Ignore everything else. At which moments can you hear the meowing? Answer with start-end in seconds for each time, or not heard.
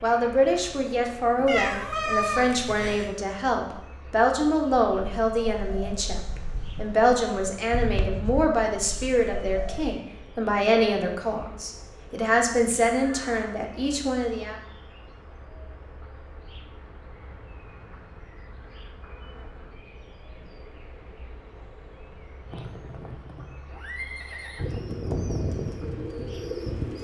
1.4-3.1.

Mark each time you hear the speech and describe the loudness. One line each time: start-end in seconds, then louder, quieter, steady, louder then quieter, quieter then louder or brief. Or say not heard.
0.0-14.6 steady.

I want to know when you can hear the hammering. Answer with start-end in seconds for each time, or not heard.
not heard.